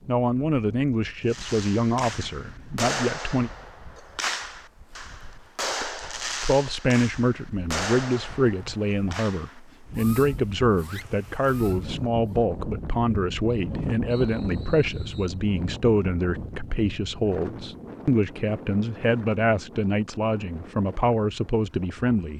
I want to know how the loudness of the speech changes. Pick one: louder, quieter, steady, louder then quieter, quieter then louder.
steady.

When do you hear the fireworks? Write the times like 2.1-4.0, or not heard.
1.2-12.4.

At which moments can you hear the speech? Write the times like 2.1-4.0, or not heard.
0.1-3.5, 5.8-22.3.